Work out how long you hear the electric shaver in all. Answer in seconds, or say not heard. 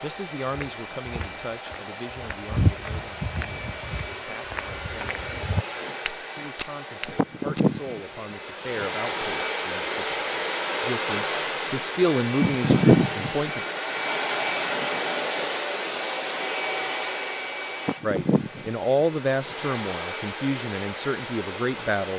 not heard.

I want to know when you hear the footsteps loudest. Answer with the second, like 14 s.
3 s.